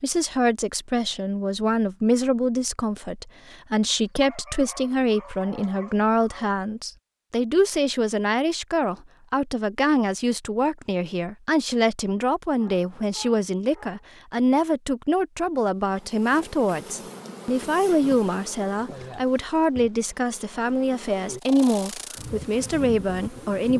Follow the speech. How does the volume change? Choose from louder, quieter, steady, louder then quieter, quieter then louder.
steady.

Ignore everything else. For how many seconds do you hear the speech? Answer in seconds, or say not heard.
24 s.